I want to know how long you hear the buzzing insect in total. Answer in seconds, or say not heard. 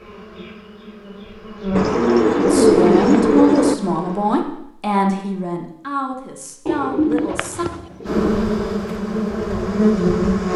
7 s.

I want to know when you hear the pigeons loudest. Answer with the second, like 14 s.
3 s.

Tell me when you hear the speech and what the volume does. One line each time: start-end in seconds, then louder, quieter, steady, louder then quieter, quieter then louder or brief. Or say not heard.
2.5-7.7 quieter.